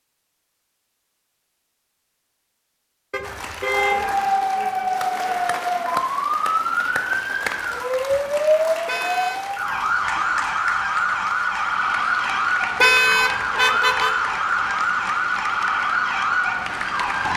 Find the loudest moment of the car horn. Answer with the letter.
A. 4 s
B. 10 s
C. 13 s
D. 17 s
C.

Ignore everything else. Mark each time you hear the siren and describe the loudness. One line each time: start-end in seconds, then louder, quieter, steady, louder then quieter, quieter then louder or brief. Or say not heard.
3.7-17.3 steady.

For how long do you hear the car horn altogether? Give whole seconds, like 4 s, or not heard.
3 s.